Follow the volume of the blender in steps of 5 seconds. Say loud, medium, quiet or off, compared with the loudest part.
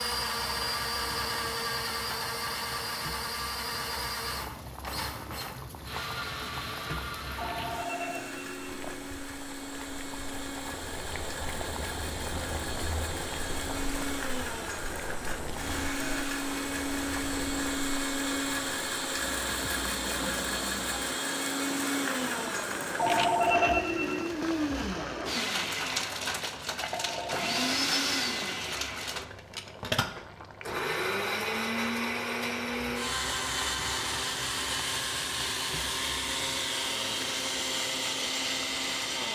loud, medium, medium, loud, loud, loud, loud, loud.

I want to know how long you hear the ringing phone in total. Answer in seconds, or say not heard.
5 s.